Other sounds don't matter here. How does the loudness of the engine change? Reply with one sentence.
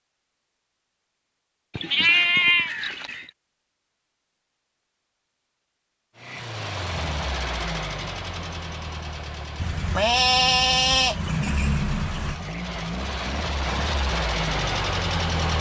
The volume of the engine goes down, then up.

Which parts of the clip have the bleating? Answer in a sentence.
The bleating can be heard from 1.8 to 3.3 s and from 9.6 to 12.4 s.